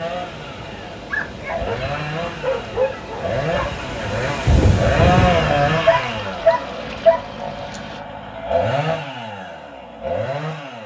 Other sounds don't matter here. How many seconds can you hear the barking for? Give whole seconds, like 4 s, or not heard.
4 s.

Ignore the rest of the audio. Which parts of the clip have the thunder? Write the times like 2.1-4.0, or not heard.
4.5-5.8.